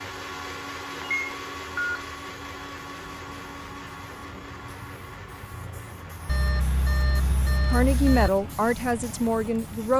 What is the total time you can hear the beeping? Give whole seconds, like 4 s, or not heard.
3 s.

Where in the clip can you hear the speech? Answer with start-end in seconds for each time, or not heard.
7.7-9.9.